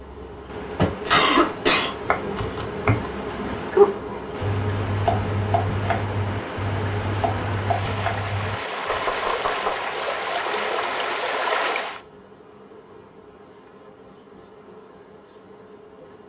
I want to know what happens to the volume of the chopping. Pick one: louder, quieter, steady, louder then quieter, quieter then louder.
quieter.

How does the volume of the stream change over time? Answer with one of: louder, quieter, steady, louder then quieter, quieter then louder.
louder.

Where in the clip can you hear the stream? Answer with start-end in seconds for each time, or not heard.
0.2-12.0.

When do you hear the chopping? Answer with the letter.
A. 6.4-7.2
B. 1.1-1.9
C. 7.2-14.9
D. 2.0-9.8
D.